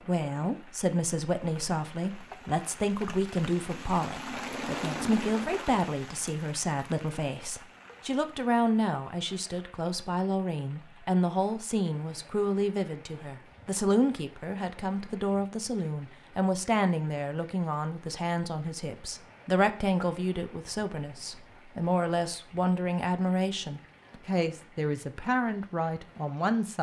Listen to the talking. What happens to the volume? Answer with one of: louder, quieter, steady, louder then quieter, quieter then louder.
steady.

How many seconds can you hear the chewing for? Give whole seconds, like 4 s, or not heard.
not heard.